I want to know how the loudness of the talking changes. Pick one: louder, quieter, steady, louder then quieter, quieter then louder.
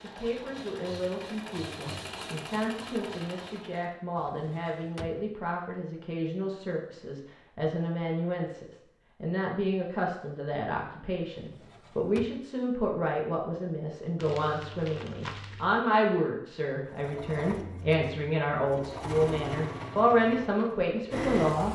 louder.